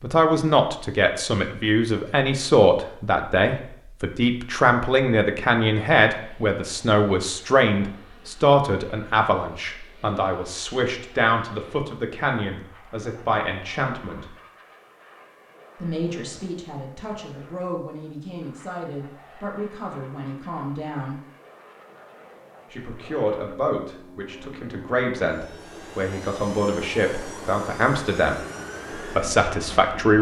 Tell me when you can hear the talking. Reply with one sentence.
You can hear the talking from 0.0 to 14.3 s, from 15.8 to 21.1 s, from 22.7 to 28.4 s and from 28.9 to 30.1 s.